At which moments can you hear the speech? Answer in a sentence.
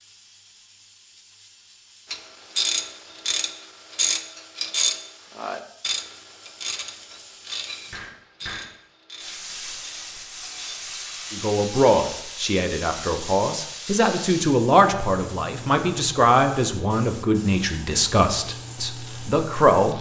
The speech can be heard from 11.3 to 19.9 s.